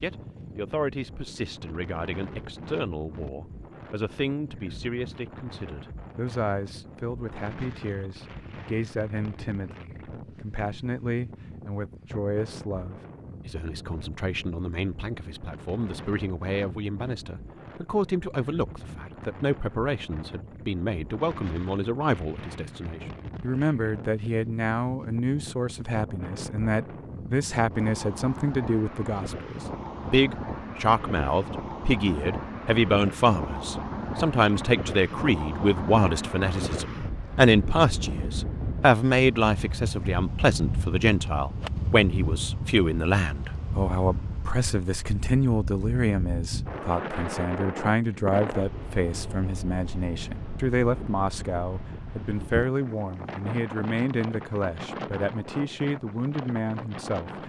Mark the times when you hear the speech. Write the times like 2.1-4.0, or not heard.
0.0-57.4.